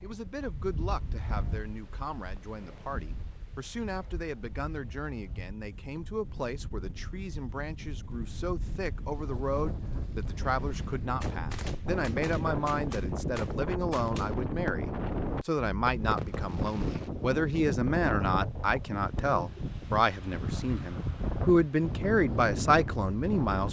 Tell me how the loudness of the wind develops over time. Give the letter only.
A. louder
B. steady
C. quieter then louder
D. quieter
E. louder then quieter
A.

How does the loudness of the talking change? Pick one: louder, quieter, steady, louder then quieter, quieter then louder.
louder.